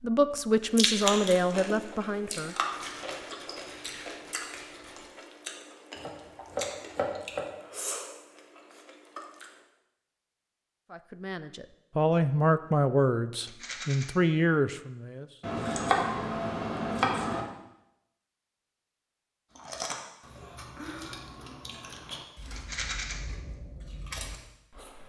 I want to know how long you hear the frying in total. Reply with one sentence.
You can't hear the frying here.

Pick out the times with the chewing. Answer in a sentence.
The chewing can be heard from 0.6 to 9.6 s and from 19.6 to 25.0 s.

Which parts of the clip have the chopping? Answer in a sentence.
You can hear the chopping from 6.0 to 7.5 s and from 15.4 to 17.4 s.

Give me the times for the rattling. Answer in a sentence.
You can hear the rattling from 2.7 to 5.1 s, from 13.4 to 14.1 s and from 22.6 to 23.1 s.